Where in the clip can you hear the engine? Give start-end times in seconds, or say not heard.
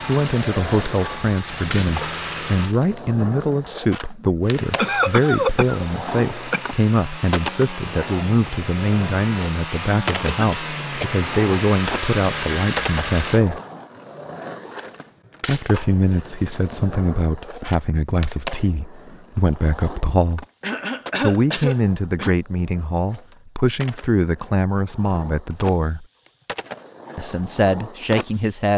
0.0-2.8, 4.4-13.4.